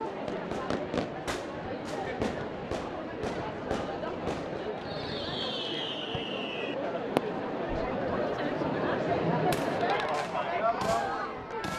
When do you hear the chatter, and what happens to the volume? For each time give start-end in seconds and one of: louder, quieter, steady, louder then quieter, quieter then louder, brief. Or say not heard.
0.0-11.7 louder.